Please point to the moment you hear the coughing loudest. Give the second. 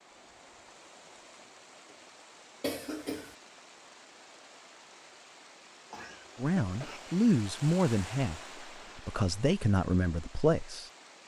3 s.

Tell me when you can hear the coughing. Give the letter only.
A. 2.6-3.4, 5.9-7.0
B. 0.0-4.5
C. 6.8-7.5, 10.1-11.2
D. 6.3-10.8
A.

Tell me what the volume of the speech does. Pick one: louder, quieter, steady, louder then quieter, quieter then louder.
quieter then louder.